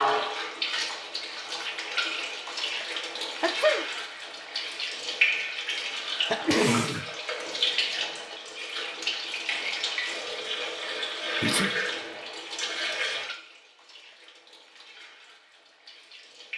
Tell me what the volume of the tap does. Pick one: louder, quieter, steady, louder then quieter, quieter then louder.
quieter.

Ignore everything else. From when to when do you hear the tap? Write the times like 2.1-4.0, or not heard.
0.0-16.5.